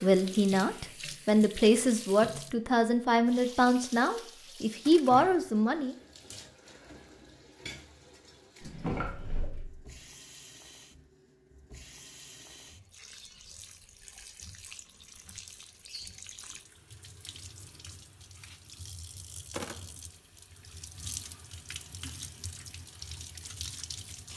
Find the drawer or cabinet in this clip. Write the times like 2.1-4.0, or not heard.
8.6-9.8.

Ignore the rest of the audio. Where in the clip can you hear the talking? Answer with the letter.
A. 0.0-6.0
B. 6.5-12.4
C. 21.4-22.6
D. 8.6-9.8
A.